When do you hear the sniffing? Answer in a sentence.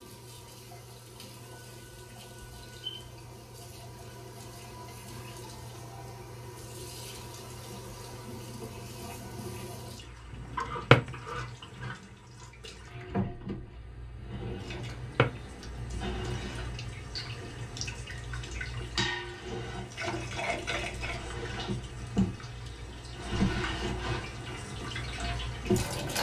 You can't hear the sniffing here.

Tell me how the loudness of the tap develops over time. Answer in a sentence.
The volume of the tap goes up.